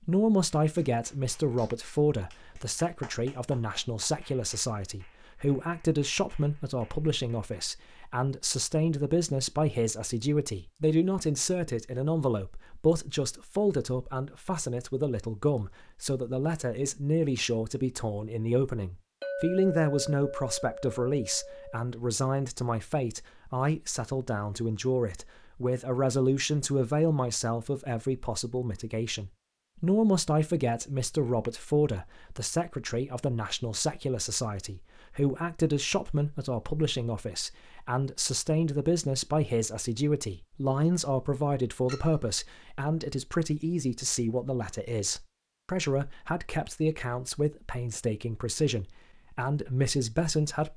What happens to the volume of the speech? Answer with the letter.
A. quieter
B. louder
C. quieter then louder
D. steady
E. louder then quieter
D.